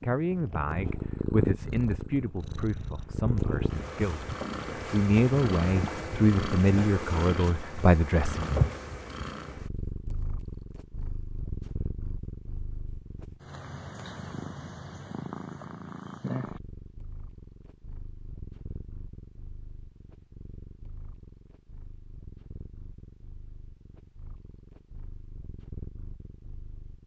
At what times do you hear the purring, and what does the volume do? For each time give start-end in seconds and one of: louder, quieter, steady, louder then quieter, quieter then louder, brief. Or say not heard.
0.0-27.0 quieter.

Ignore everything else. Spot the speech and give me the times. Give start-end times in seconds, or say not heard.
0.0-8.5.